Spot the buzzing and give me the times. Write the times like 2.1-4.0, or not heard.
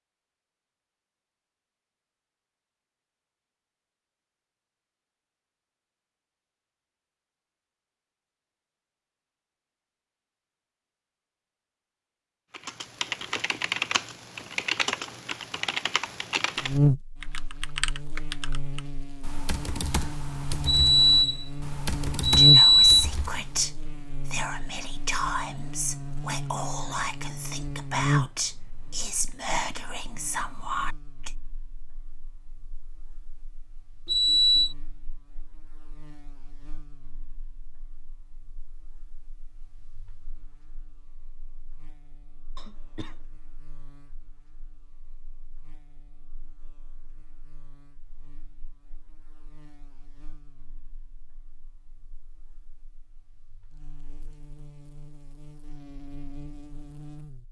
16.6-57.4.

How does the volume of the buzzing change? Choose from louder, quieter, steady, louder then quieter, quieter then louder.
quieter then louder.